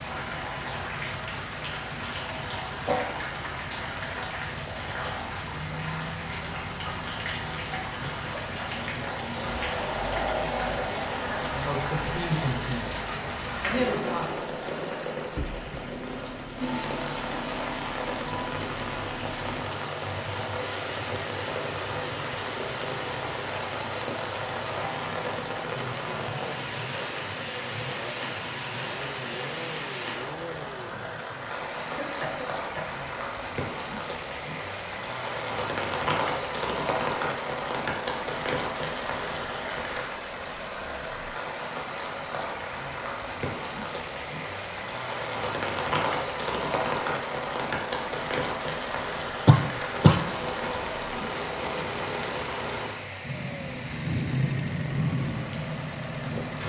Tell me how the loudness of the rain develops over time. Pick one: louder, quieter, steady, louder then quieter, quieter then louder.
steady.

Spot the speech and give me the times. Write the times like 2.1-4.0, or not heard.
11.5-12.9, 13.6-14.3.